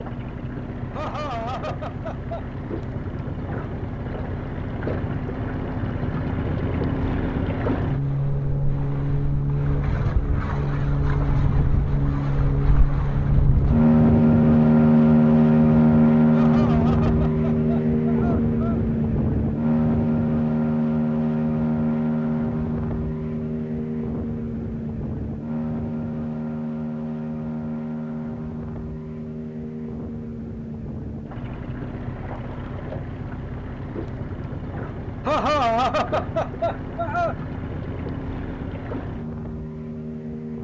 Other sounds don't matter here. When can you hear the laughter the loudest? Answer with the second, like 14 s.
36 s.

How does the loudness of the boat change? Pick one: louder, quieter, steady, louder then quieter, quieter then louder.
louder then quieter.